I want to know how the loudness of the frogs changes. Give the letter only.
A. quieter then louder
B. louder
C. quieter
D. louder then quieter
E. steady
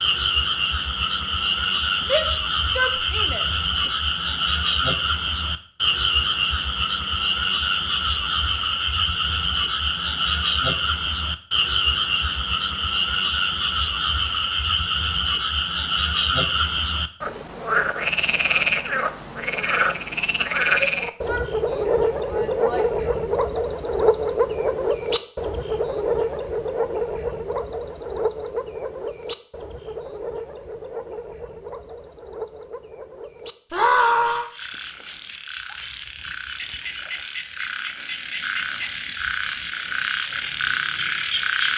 C.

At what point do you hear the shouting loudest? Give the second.
34 s.